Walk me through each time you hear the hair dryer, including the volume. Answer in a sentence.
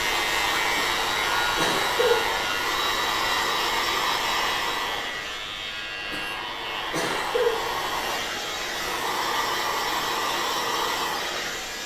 You can hear the hair dryer from 0.0 to 11.8 s, getting quieter then louder.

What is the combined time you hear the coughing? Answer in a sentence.
You can hear the coughing for 3 seconds altogether.